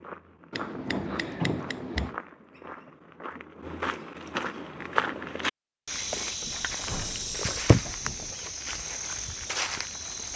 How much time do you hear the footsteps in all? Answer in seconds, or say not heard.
10 s.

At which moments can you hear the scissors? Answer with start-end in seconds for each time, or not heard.
0.5-2.1, 6.5-7.9.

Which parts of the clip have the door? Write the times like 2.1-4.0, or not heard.
0.8-2.2, 6.4-8.3.